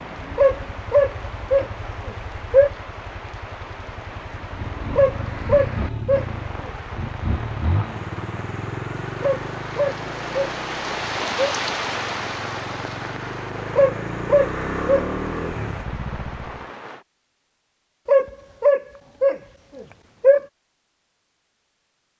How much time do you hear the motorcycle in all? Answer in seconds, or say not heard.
17 s.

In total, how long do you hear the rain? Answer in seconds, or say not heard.
17 s.